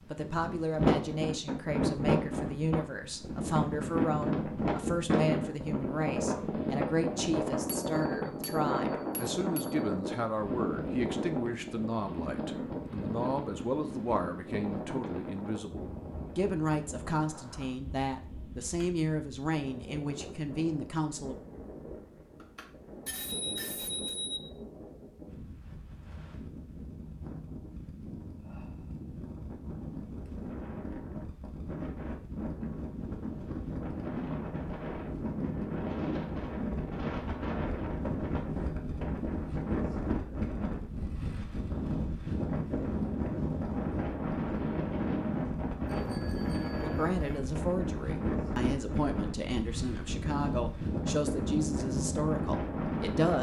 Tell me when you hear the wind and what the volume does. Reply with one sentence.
You can hear the wind from 0.0 to 53.3 s, getting quieter then louder.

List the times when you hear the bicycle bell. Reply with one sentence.
The bicycle bell can be heard from 7.7 to 9.8 s, from 22.4 to 24.4 s and from 45.9 to 47.5 s.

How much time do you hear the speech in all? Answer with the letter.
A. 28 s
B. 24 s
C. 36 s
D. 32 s
A.